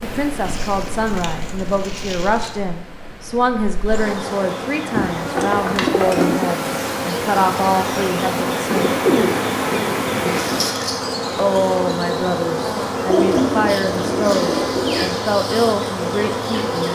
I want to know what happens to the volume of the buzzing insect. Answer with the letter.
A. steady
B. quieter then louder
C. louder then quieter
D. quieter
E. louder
E.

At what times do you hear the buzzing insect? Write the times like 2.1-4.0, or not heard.
0.0-16.8.